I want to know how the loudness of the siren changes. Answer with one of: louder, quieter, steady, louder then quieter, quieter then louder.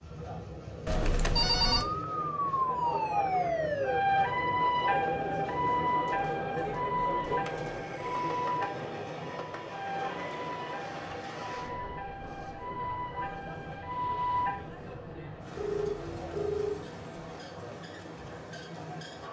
quieter.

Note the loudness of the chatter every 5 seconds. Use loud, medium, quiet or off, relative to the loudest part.
loud, loud, medium, medium.